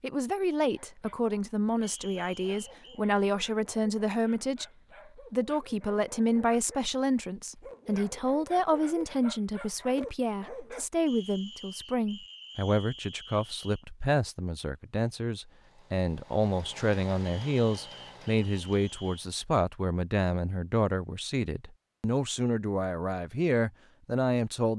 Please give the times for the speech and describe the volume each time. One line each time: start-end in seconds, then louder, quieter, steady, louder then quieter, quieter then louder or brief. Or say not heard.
0.0-24.7 steady.